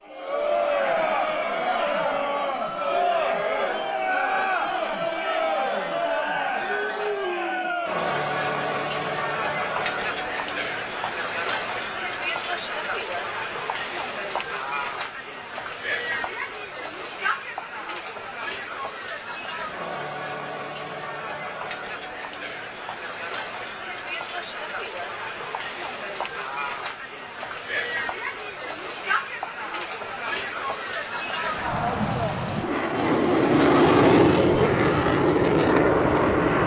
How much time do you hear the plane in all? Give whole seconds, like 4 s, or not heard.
5 s.